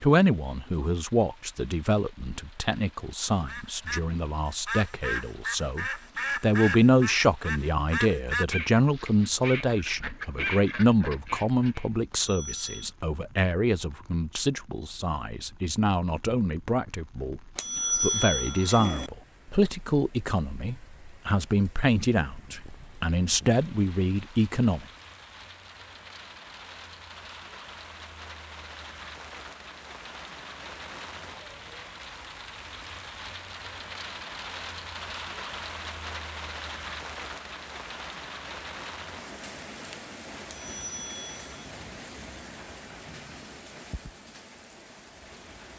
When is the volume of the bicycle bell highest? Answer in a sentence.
The loudest moment of the bicycle bell is at 18 seconds.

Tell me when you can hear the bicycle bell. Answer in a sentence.
The bicycle bell can be heard from 12.1 to 12.9 s, from 17.6 to 19.1 s and from 40.5 to 41.6 s.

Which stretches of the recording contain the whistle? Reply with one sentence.
The whistle can't be heard in this clip.